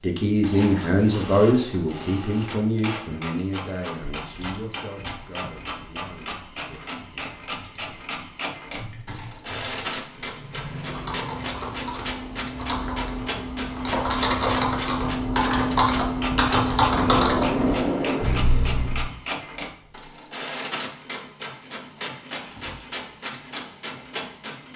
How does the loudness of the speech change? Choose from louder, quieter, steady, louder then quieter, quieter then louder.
quieter.